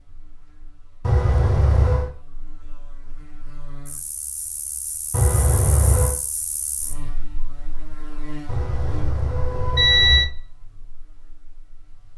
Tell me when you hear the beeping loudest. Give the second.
10 s.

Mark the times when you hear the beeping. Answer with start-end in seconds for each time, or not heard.
1.0-2.1, 5.1-6.2, 8.4-10.3.